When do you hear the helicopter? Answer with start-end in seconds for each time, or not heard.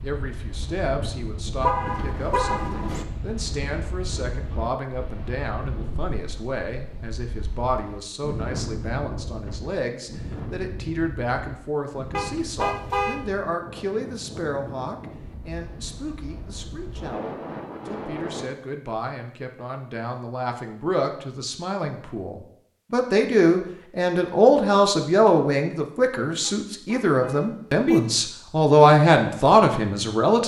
not heard.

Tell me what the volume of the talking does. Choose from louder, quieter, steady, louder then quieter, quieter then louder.
louder.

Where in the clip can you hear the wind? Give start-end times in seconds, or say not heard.
0.0-18.4.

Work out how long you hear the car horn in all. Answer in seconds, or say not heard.
4 s.